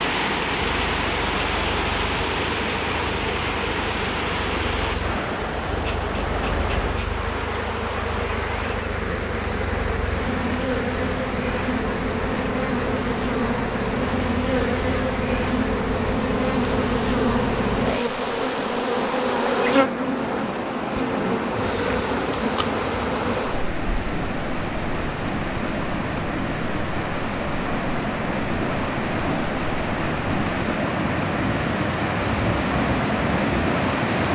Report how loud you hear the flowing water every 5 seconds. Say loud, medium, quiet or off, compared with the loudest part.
loud, medium, medium, medium, medium, loud, loud.